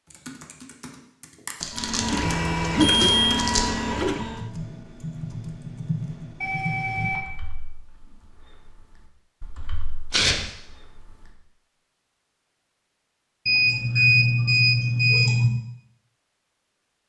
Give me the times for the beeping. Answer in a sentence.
You can hear the beeping from 2.8 to 3.4 s, from 6.4 to 7.2 s and from 13.4 to 15.4 s.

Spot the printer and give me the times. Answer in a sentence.
You can hear the printer from 1.7 to 4.5 s.